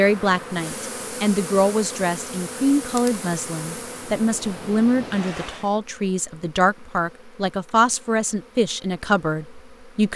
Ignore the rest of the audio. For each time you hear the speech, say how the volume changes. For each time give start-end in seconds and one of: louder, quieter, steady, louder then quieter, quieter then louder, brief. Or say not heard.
0.0-10.1 steady.